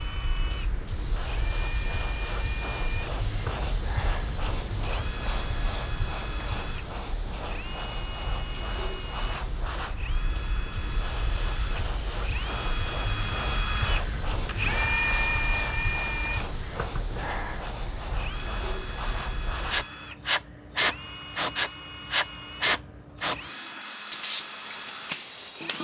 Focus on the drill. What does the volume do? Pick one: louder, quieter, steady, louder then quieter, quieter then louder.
louder then quieter.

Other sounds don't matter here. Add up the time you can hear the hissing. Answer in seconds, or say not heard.
26 s.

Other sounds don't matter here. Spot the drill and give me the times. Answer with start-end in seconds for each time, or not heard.
0.0-25.7.